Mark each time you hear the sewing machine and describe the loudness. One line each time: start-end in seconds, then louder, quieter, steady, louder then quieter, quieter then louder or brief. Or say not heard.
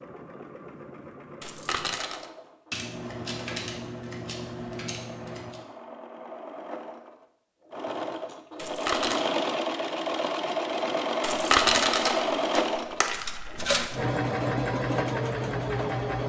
0.0-16.2 louder.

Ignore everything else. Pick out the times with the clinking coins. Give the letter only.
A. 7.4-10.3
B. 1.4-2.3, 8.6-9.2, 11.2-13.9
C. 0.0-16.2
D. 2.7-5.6
B.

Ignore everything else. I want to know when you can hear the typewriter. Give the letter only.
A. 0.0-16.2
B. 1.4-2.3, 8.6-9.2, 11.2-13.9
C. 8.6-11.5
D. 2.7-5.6
D.